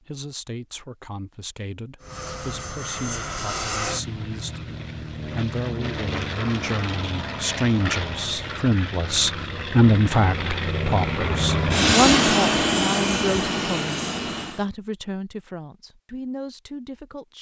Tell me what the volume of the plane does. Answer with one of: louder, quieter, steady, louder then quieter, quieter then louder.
louder.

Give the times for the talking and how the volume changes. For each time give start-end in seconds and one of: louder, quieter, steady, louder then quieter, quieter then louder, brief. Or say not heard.
0.0-17.3 louder then quieter.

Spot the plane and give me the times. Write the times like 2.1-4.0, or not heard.
2.0-14.7.